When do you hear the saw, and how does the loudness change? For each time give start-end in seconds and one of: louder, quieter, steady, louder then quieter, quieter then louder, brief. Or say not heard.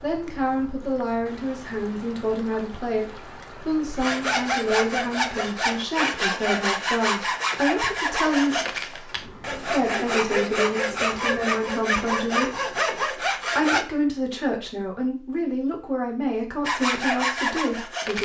4.0-13.8 steady
16.6-18.2 brief.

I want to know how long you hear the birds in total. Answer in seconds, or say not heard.
not heard.